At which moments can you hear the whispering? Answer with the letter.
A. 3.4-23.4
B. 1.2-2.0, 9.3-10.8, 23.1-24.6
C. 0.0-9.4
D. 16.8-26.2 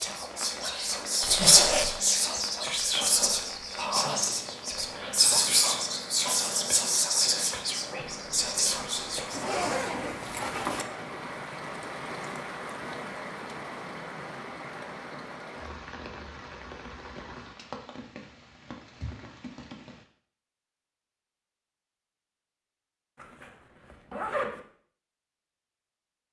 C.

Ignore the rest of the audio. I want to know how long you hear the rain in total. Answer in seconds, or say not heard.
20 s.